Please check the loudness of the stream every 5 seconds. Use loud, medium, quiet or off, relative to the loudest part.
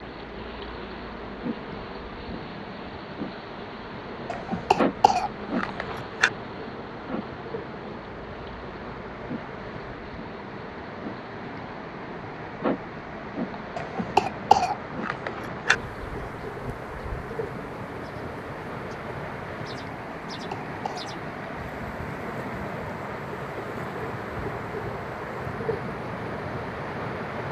medium, medium, medium, loud, loud, loud.